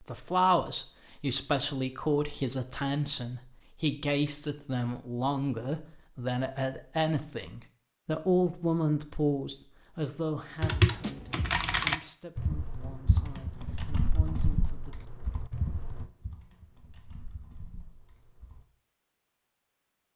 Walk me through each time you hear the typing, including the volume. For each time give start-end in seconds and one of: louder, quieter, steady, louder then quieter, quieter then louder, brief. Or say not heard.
10.6-18.6 quieter.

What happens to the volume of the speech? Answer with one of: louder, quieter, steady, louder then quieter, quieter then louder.
quieter.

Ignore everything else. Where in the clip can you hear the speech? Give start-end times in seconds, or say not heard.
0.1-14.9.